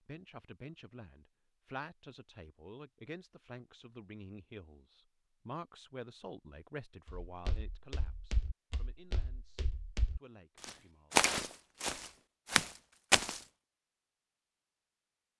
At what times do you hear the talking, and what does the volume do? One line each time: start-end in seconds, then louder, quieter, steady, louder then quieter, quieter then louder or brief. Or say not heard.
0.1-11.2 quieter.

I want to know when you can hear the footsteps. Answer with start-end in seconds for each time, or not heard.
7.0-13.4.